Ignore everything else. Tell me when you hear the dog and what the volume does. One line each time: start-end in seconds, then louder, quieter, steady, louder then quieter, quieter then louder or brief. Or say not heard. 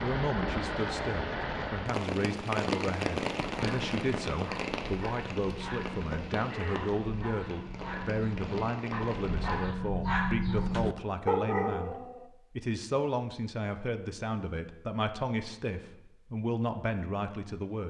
3.4-12.3 louder.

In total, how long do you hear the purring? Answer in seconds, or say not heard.
not heard.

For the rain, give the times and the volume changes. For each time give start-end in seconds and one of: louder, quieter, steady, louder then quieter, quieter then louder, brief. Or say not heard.
0.0-9.8 quieter.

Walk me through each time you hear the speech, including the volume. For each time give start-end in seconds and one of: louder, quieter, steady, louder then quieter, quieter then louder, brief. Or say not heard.
0.0-17.8 steady.